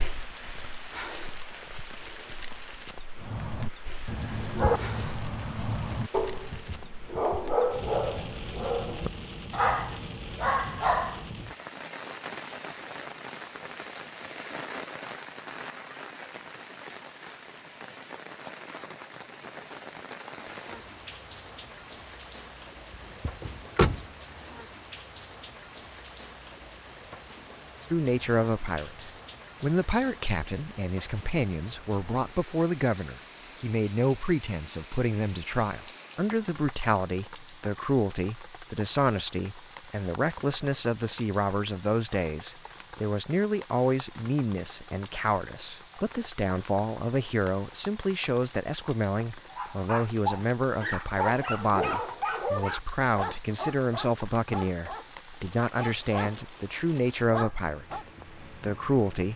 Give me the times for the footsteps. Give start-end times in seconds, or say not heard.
not heard.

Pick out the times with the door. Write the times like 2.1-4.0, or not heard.
23.2-24.1.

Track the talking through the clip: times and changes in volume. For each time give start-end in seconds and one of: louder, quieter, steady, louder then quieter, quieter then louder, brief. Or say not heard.
27.9-59.3 steady.